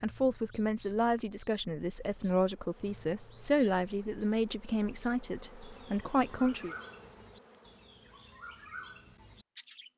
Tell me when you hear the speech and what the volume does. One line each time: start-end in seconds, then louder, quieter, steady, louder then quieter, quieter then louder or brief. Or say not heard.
0.0-6.8 steady.